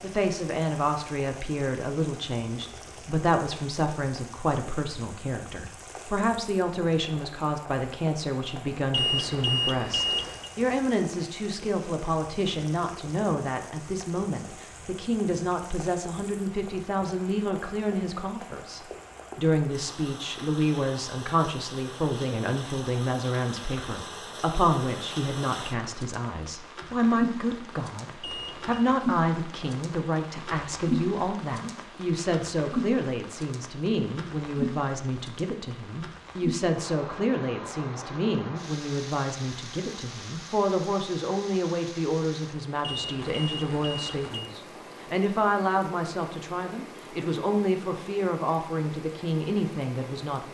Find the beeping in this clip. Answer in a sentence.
The beeping can be heard from 8.9 to 10.5 s, from 28.2 to 28.9 s and from 42.8 to 44.5 s.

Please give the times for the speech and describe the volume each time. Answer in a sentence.
The speech can be heard from 0.0 to 50.5 s, at a steady volume.